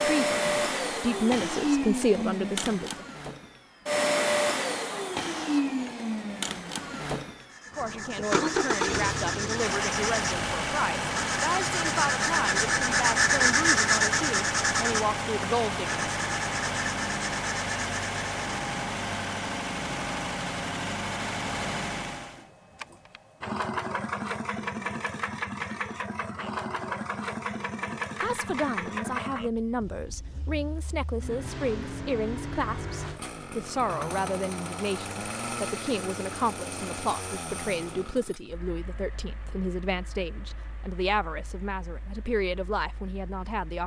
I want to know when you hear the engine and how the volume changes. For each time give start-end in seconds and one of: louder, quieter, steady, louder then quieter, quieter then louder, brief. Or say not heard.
0.0-43.8 quieter.